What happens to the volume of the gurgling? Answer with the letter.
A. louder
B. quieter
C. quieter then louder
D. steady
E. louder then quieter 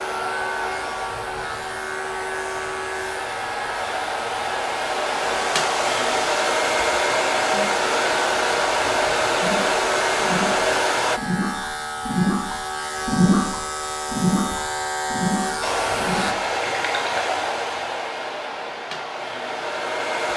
E.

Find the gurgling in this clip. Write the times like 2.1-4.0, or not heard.
9.4-17.2.